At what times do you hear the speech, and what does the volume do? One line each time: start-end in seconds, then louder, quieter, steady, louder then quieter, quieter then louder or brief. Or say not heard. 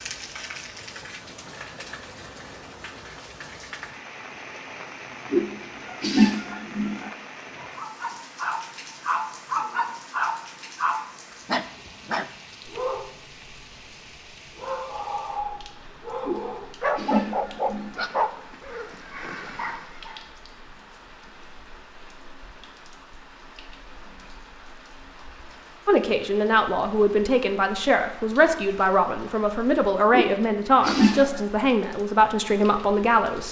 25.9-33.4 steady.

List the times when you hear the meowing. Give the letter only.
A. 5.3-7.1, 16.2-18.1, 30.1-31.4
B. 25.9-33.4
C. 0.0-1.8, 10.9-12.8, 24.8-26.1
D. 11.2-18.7
A.